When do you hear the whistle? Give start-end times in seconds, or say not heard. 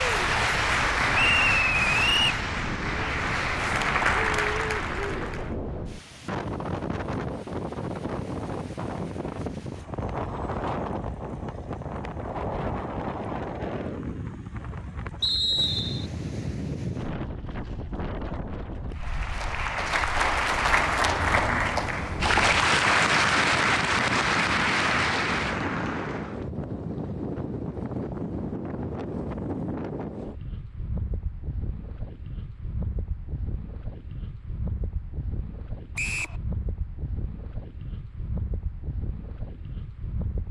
1.1-2.4, 15.2-16.1, 36.0-36.4.